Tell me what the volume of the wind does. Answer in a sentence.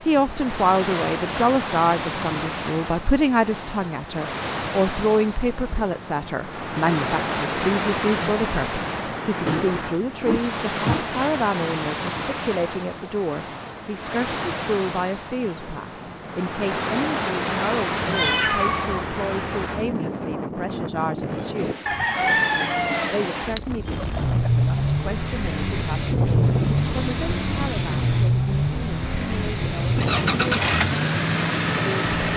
The loudness of the wind stays about the same.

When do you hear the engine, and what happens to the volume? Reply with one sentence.
The engine can be heard from 24.1 to 32.3 s, at a steady volume.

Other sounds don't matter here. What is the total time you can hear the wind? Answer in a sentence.
The wind can be heard for 32 seconds in total.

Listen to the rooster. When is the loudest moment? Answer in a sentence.
The loudest moment of the rooster is at 22 seconds.